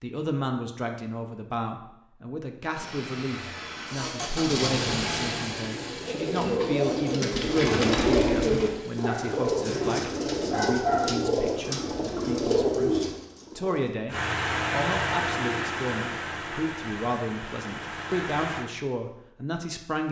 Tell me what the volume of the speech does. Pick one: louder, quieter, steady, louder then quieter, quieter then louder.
steady.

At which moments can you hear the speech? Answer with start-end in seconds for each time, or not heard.
0.0-20.0.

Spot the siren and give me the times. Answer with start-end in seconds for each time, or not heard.
not heard.